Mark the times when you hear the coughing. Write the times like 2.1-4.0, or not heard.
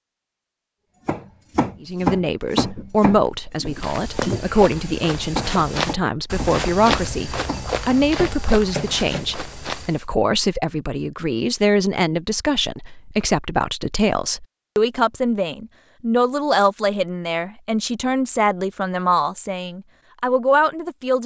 not heard.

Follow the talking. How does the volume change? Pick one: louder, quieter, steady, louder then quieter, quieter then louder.
steady.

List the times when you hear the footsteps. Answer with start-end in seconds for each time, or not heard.
3.6-10.1.